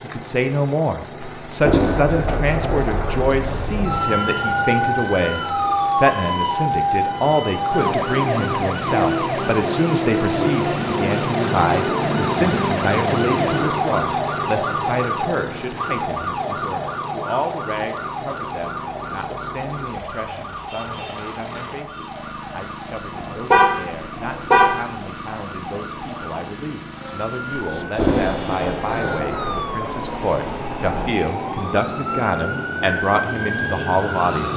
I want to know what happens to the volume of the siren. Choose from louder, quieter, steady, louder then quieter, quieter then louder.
quieter then louder.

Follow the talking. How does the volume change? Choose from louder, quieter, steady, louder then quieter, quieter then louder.
quieter then louder.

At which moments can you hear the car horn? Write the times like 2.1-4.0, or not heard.
23.1-24.8.